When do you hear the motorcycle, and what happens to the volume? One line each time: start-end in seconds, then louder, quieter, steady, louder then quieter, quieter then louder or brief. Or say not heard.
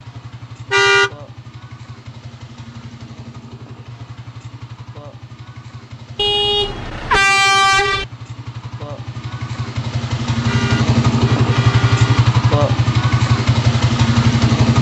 0.0-14.7 louder.